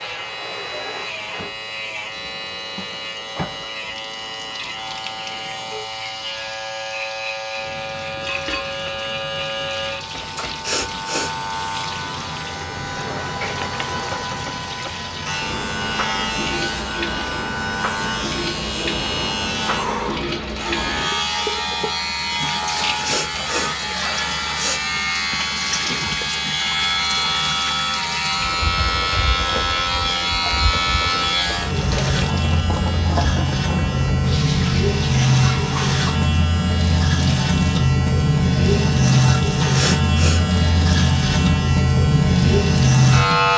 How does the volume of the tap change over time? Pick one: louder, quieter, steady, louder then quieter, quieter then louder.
louder.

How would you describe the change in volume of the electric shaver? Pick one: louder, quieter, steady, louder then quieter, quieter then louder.
louder.